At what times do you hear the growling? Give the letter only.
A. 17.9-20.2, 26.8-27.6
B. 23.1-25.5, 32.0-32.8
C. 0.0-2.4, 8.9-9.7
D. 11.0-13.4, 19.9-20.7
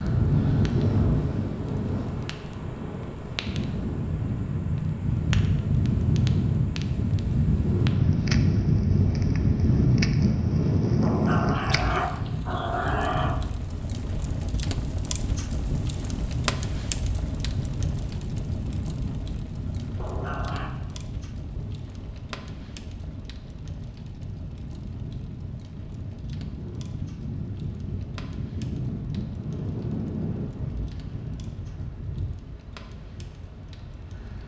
D.